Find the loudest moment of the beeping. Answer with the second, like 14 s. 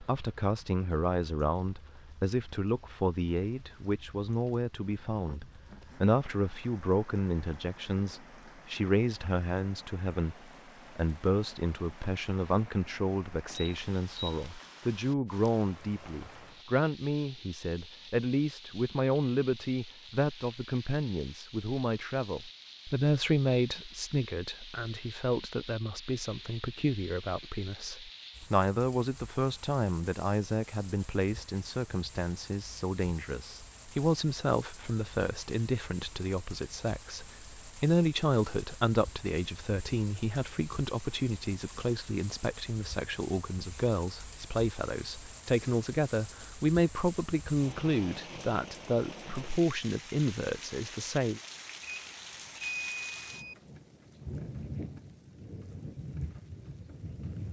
53 s.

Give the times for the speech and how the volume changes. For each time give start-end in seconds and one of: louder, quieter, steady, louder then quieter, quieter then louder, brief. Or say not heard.
0.0-51.4 steady.